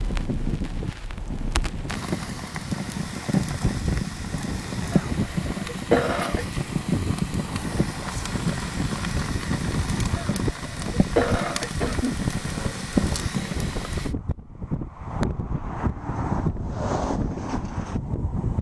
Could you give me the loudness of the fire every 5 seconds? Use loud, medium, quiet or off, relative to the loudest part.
loud, loud, loud, off.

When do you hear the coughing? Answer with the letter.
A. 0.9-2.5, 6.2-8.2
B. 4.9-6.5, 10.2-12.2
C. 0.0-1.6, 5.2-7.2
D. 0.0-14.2
B.